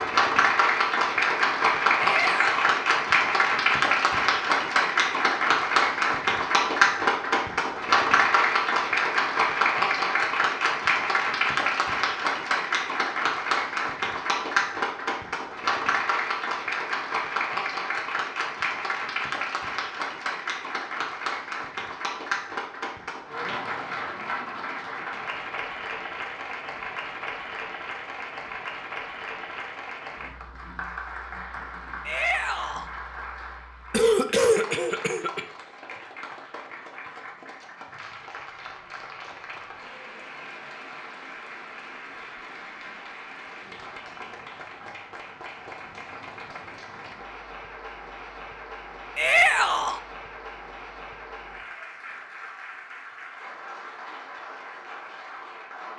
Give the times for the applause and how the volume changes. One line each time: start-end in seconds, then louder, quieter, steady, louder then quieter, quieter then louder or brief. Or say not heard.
0.0-55.9 quieter.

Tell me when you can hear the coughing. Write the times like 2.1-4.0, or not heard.
33.9-35.4.